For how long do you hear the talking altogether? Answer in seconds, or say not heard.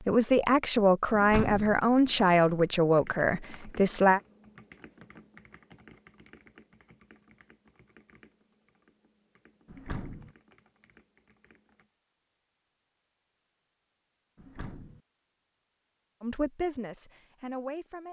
6 s.